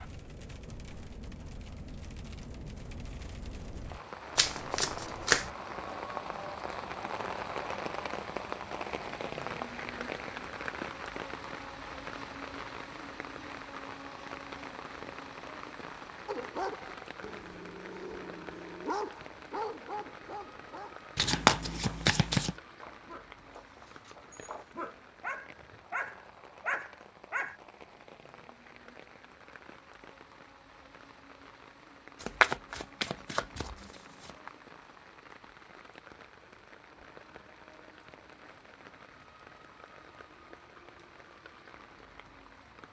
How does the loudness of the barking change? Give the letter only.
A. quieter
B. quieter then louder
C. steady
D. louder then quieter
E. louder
B.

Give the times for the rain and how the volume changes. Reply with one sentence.
You can hear the rain from 0.0 to 42.8 s, getting quieter.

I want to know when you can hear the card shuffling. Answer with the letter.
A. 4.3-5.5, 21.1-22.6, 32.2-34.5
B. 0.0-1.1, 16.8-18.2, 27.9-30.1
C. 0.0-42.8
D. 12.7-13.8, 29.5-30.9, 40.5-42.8
A.